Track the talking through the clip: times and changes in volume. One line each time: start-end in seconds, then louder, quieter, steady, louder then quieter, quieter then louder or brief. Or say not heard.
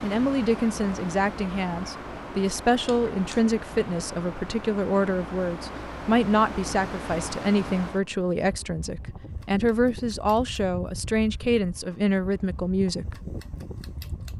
0.0-13.2 steady.